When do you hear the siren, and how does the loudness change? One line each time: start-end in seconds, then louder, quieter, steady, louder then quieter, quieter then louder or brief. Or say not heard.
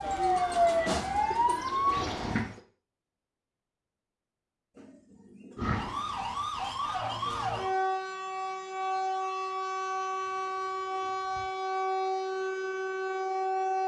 0.0-2.5 brief
5.5-13.8 steady.